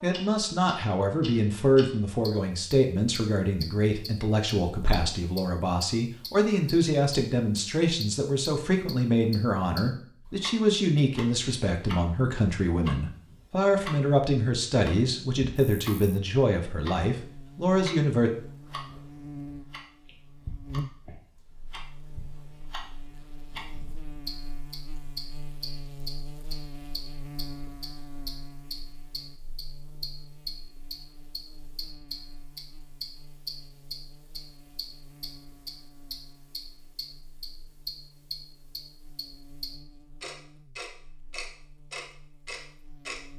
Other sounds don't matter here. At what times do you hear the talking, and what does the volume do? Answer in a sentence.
You can hear the talking from 0.0 to 18.3 s, at a steady volume.